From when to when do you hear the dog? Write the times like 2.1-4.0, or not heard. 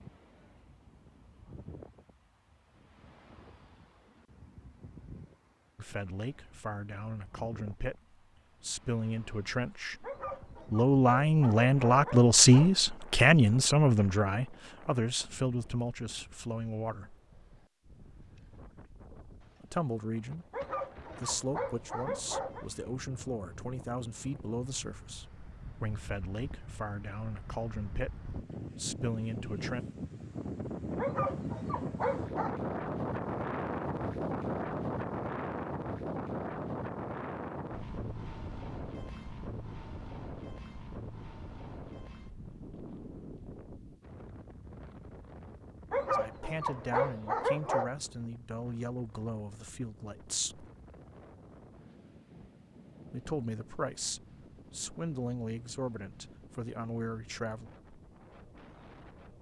10.0-12.8, 20.5-22.6, 30.9-32.6, 45.9-47.9.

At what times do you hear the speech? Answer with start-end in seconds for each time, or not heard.
5.8-10.1, 10.7-17.1, 19.6-20.4, 21.1-29.9, 46.1-50.6, 53.1-57.6.